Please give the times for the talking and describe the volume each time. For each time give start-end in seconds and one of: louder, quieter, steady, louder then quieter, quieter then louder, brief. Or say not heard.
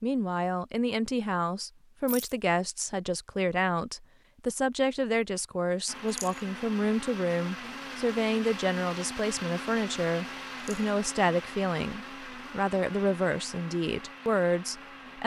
0.0-15.2 steady.